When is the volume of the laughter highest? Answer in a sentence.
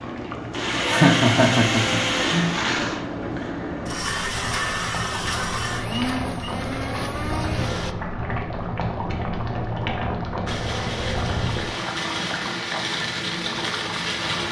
The loudest moment of the laughter is at 1 second.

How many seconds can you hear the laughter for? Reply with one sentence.
You can hear the laughter for 2 seconds altogether.